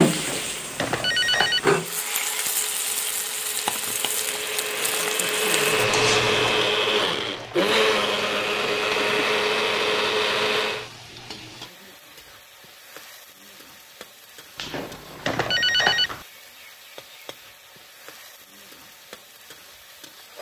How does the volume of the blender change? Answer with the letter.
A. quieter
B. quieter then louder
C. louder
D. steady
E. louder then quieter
C.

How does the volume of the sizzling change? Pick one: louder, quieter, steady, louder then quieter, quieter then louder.
quieter.